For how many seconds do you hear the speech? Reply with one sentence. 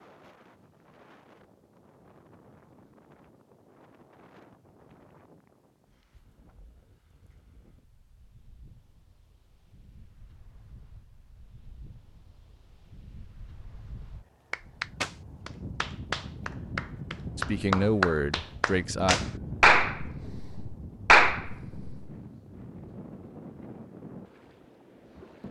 You can hear the speech for 2 seconds altogether.